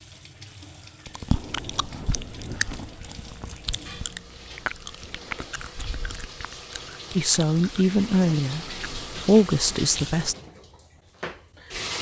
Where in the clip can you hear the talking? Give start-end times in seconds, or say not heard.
7.2-10.3.